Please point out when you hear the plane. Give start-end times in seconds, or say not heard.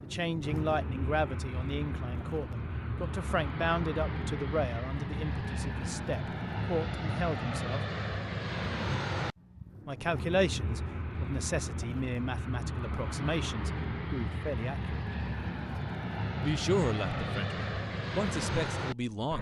0.0-19.3.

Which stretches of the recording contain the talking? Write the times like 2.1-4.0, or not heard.
0.0-7.8, 9.8-15.1, 16.4-19.3.